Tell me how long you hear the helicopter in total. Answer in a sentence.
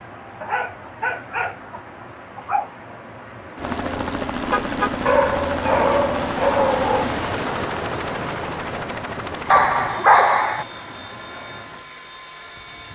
You can hear the helicopter for 9 seconds altogether.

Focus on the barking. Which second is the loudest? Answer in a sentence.
The loudest moment of the barking is at 10 seconds.